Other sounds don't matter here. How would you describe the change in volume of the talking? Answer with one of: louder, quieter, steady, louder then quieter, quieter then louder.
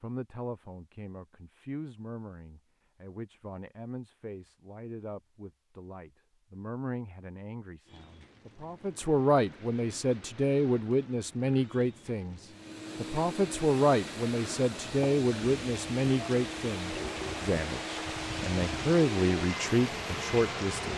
louder.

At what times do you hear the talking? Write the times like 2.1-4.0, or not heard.
0.0-20.9.